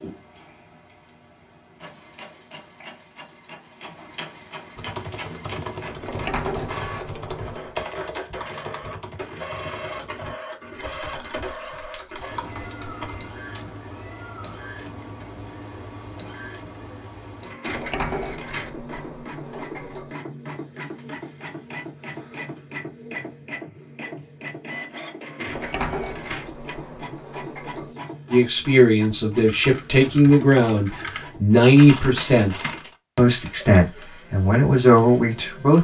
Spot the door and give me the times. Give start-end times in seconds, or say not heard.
6.0-7.8, 17.6-20.1, 25.4-27.9.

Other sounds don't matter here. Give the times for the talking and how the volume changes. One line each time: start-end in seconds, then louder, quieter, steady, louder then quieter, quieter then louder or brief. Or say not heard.
28.3-35.7 steady.